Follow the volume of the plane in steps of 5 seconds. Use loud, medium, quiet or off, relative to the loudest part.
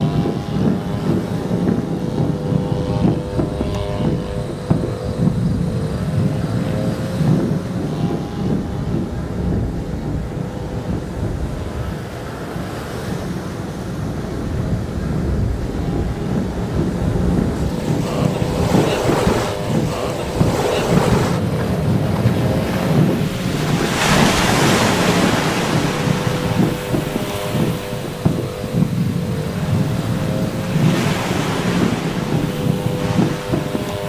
loud, loud, medium, loud, loud, loud, loud.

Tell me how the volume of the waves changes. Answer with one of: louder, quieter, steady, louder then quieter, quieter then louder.
louder then quieter.